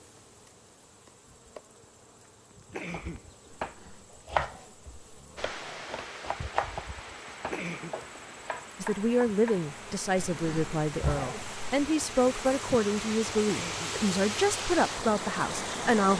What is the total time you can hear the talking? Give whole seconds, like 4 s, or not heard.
7 s.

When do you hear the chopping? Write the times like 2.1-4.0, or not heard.
2.9-9.7.